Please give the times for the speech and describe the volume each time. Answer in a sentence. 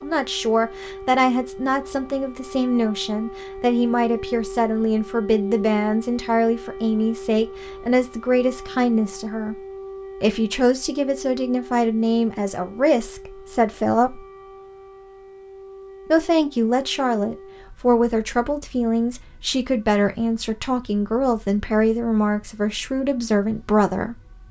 The speech can be heard from 0.0 to 9.6 s, at a steady volume; from 10.2 to 14.2 s, at a steady volume; and from 16.1 to 24.1 s, at a steady volume.